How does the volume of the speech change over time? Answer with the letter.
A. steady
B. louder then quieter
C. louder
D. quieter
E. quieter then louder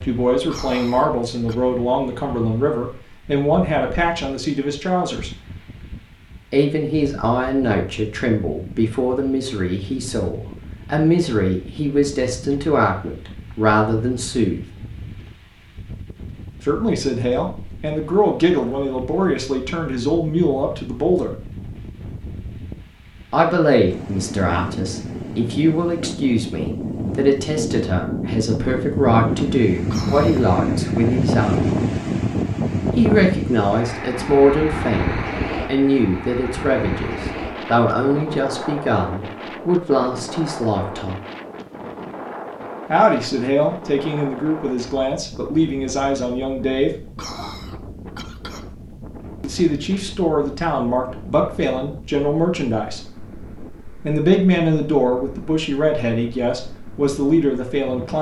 A.